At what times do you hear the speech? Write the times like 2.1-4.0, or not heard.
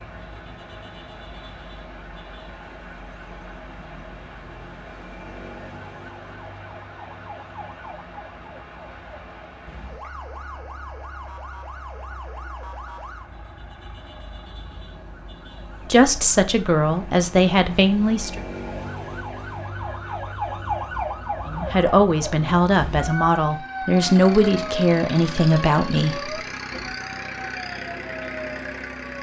15.9-18.4, 21.4-26.4.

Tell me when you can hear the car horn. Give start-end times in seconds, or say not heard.
not heard.